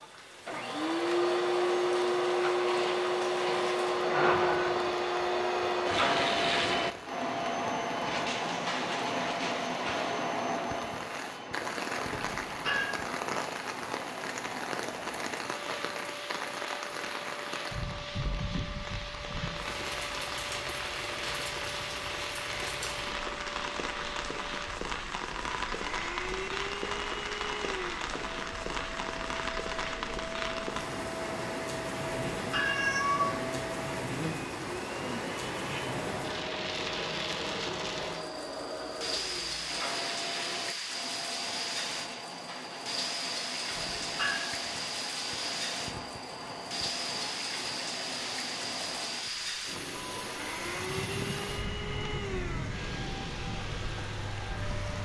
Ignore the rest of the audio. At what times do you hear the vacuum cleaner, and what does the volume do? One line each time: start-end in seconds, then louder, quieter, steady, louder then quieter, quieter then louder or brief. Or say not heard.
0.0-55.0 quieter.